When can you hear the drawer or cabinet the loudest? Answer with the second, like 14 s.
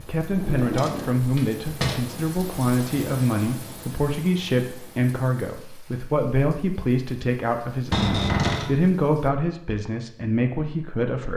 8 s.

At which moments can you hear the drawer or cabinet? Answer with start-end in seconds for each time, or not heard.
0.2-2.0, 7.9-8.7.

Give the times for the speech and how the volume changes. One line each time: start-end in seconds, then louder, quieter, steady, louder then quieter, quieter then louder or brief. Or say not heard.
0.0-11.3 steady.